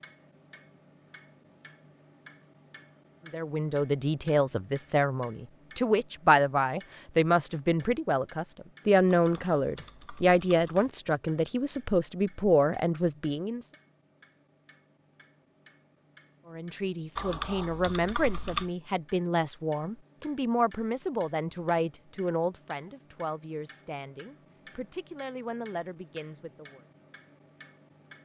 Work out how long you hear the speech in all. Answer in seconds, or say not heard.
21 s.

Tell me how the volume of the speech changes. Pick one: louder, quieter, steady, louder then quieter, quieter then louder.
quieter.